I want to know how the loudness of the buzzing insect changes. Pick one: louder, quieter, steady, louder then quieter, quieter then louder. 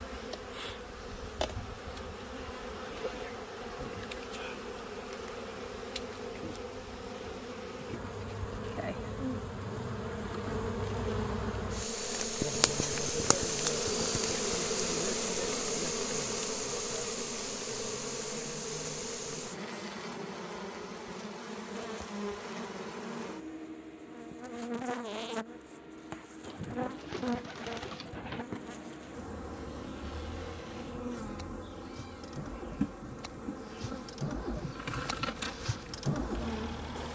louder then quieter.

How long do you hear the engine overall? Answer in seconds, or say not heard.
8 s.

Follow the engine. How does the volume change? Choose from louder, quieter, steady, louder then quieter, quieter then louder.
louder.